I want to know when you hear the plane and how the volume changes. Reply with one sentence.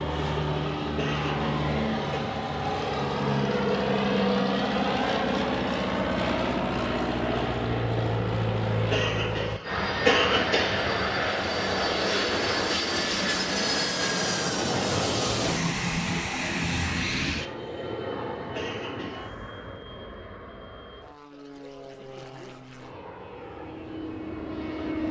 You can hear the plane from 0.0 to 25.0 s, getting quieter.